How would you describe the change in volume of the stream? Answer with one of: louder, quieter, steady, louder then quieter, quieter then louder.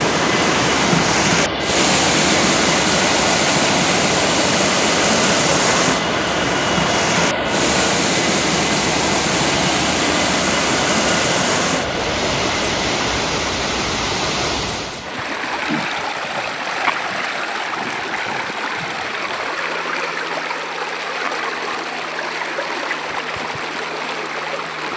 quieter.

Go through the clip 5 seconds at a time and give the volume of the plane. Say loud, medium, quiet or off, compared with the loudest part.
loud, loud, loud, quiet, quiet.